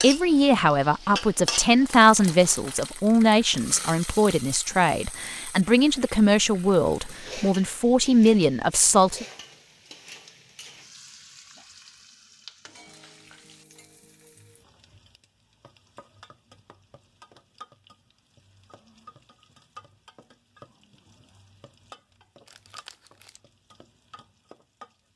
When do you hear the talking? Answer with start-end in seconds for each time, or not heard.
0.0-9.2.